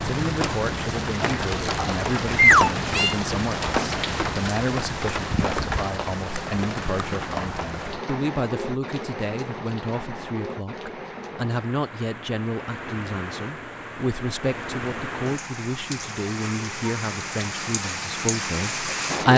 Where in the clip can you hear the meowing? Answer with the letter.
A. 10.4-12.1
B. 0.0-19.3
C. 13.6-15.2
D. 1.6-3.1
D.